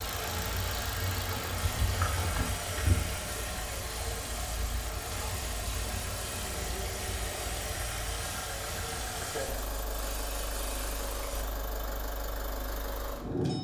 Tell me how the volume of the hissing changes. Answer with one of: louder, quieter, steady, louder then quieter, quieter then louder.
steady.